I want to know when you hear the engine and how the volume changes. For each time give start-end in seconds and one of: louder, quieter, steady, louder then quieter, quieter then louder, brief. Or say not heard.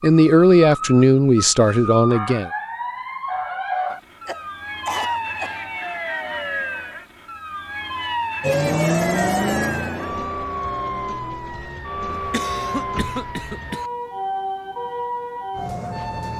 8.4-13.3 quieter.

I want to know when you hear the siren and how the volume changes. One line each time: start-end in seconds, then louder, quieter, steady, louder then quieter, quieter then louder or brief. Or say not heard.
0.0-16.3 steady.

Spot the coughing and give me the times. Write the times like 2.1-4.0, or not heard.
3.9-5.6, 12.1-13.9.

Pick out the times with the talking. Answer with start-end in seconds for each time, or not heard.
0.0-2.5.